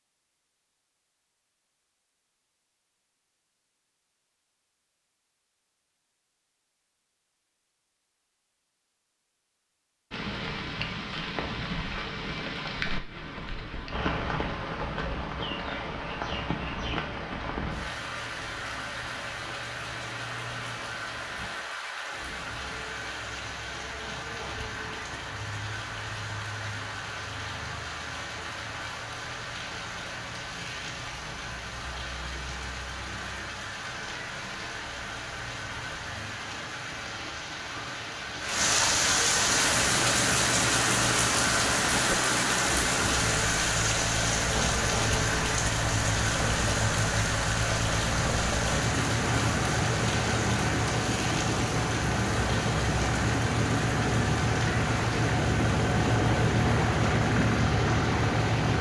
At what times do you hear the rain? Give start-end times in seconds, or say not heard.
10.1-58.7.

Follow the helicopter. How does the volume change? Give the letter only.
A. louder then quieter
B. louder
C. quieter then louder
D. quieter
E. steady
B.